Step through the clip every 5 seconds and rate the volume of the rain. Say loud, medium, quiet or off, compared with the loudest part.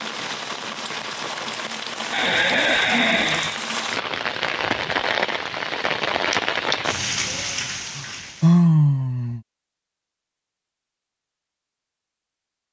loud, loud, off.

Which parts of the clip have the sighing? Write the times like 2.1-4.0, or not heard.
2.1-3.6, 8.0-9.4.